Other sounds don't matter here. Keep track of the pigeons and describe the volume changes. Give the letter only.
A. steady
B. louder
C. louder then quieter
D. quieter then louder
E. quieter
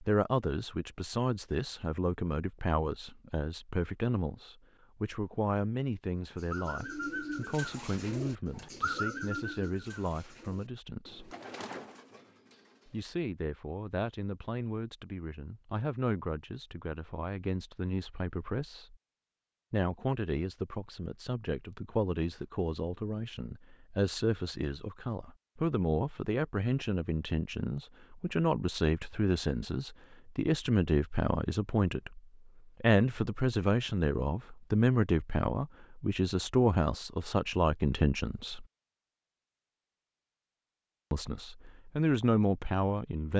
E.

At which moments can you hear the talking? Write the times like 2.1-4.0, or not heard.
0.0-11.3, 12.8-18.9, 19.7-32.2, 32.8-38.6, 41.1-43.3.